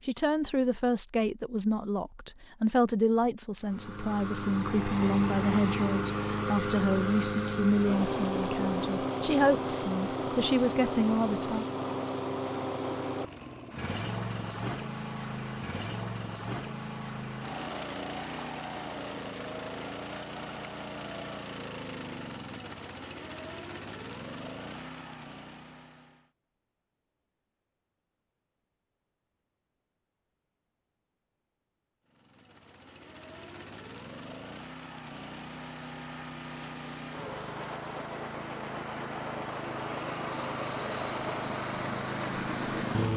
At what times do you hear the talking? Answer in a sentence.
You can hear the talking from 0.1 to 11.7 s.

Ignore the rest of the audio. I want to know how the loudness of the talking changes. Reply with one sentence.
The loudness of the talking stays about the same.